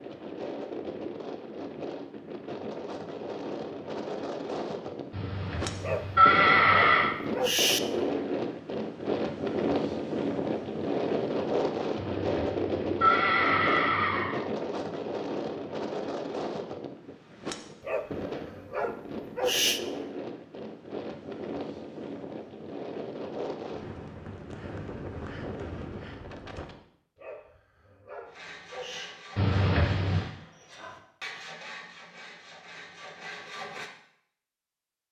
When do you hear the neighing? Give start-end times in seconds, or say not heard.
5.1-7.1, 11.9-14.4, 29.4-30.2.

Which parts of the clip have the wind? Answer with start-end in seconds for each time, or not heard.
0.0-26.9.